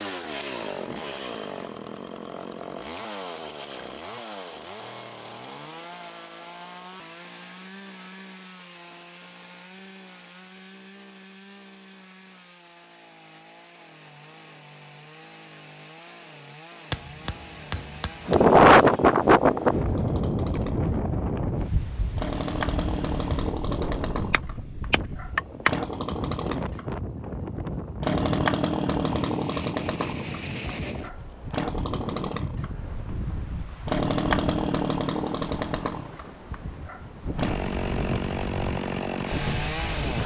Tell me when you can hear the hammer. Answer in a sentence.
You can hear the hammer from 16.9 to 18.5 s and from 24.2 to 25.8 s.